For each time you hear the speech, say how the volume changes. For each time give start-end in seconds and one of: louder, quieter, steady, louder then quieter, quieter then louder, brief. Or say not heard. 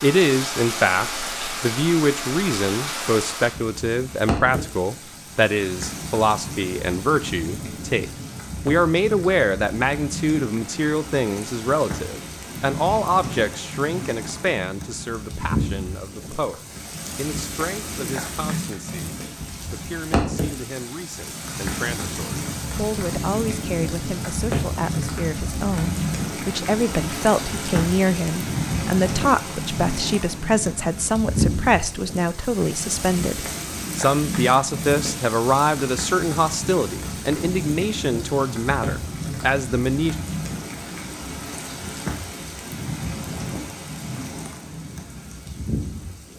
0.0-40.1 quieter then louder.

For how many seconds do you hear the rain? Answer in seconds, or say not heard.
46 s.